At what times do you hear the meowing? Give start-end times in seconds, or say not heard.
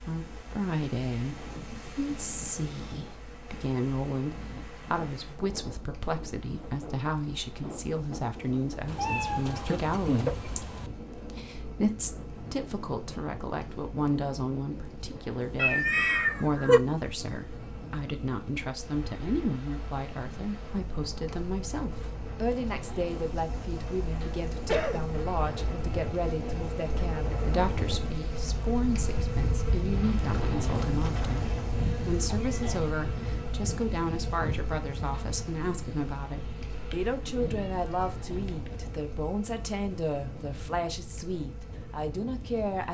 8.8-10.9, 15.6-16.8, 36.8-38.8.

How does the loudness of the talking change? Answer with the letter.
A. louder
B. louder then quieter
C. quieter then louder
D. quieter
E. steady
E.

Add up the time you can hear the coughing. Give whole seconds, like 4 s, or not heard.
2 s.